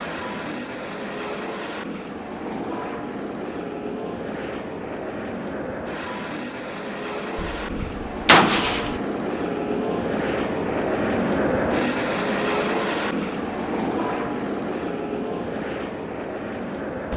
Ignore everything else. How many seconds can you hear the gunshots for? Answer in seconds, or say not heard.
2 s.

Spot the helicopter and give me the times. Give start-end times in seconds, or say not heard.
0.0-17.1.